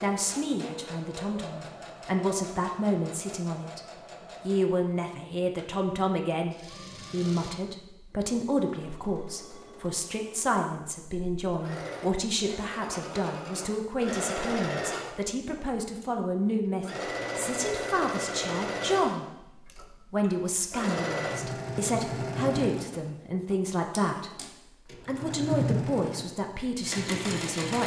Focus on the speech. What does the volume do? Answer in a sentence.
The volume of the speech stays about the same.